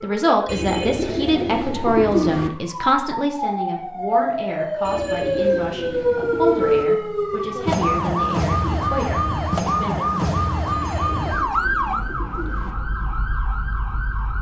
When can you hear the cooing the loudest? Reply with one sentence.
The volume of the cooing peaks at 2 seconds.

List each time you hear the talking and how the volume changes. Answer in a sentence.
You can hear the talking from 0.0 to 10.2 s, getting quieter.